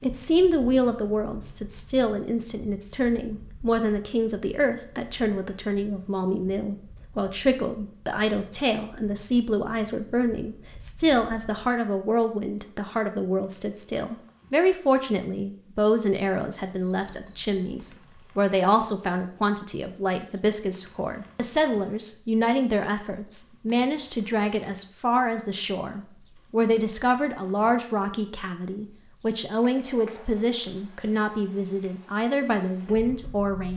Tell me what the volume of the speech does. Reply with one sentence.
The volume of the speech stays about the same.